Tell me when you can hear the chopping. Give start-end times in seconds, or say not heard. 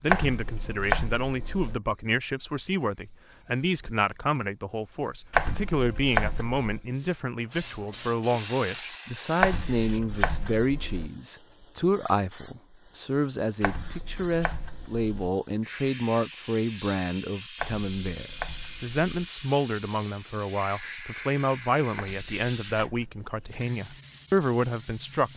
0.1-1.8, 5.3-6.8, 9.4-11.1, 13.6-15.3, 17.6-19.0, 21.9-23.6.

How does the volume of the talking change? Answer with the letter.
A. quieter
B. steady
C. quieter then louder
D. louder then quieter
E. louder
B.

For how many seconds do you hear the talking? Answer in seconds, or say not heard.
25 s.